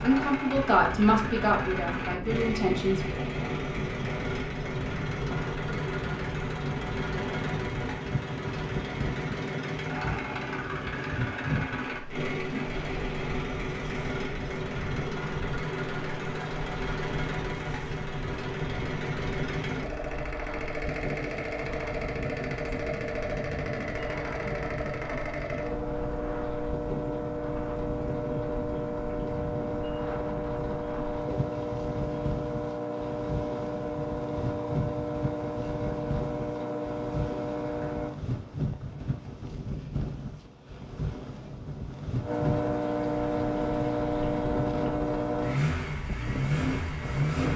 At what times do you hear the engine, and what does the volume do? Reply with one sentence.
The engine can be heard from 0.0 to 38.1 s, at a steady volume; and from 42.2 to 47.5 s, at a steady volume.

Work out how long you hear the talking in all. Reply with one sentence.
You can hear the talking for 3 seconds altogether.